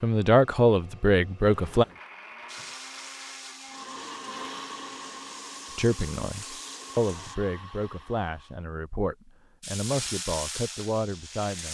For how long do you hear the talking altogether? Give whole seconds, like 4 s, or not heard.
8 s.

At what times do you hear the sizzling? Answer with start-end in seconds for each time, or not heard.
2.5-7.3, 9.6-11.6.